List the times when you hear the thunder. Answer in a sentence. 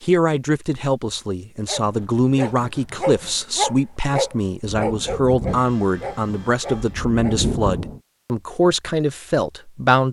You can hear the thunder from 4.7 to 8.0 s.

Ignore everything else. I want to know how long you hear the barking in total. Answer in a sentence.
You can hear the barking for 6 seconds altogether.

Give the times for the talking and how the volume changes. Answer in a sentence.
The talking can be heard from 0.0 to 10.0 s, at a steady volume.